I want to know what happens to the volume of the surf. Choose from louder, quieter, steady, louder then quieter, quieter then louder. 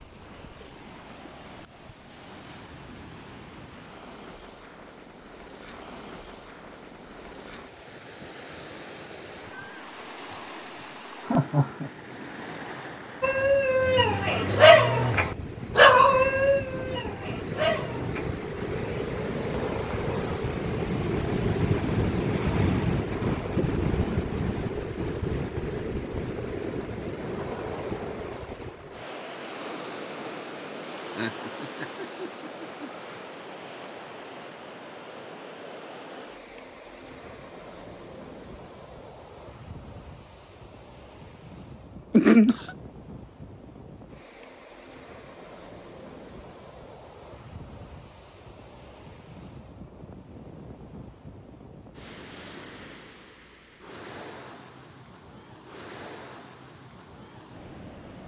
louder then quieter.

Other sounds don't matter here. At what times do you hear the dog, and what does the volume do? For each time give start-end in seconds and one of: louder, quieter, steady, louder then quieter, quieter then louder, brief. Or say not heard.
13.2-18.3 louder then quieter.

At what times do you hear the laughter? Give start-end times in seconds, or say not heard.
11.2-11.9, 30.9-32.9, 42.1-42.7.